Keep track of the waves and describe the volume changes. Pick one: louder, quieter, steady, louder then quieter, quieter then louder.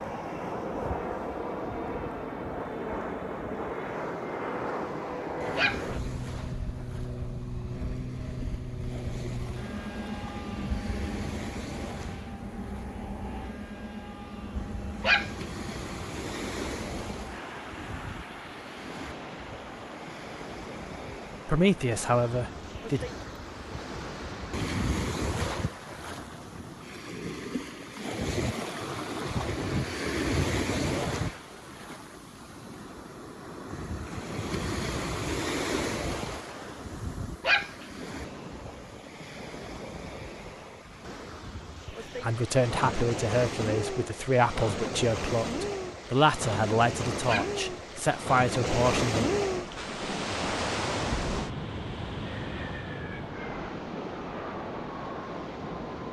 louder.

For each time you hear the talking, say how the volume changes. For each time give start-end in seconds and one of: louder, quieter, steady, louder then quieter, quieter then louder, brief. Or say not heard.
21.4-23.1 brief
42.2-49.3 steady.